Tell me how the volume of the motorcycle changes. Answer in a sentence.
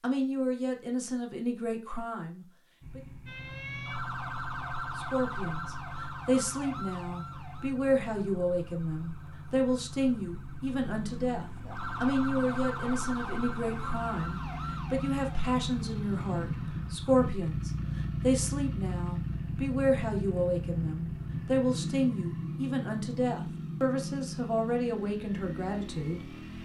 The volume of the motorcycle goes up.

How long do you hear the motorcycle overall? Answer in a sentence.
You can hear the motorcycle for 24 seconds altogether.